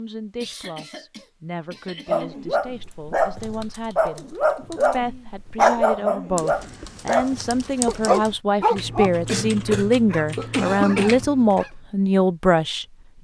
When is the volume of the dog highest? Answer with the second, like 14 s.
6 s.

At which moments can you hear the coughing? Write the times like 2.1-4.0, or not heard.
0.4-2.3, 9.2-11.2.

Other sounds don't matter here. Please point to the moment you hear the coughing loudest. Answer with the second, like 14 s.
11 s.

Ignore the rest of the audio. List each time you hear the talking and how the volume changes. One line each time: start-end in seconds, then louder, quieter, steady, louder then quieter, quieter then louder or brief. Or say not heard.
0.0-13.2 louder.